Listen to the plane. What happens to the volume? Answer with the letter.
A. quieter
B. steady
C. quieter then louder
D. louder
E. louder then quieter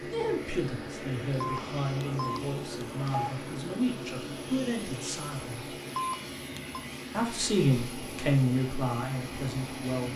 B.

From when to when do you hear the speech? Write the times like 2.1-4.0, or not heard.
0.1-5.8, 7.1-10.1.